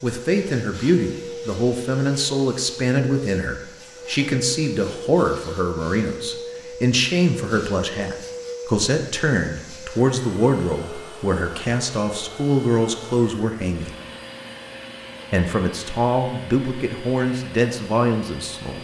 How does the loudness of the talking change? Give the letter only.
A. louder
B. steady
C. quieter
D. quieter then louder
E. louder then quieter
B.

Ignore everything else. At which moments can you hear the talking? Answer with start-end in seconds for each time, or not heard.
0.0-13.9, 15.3-18.7.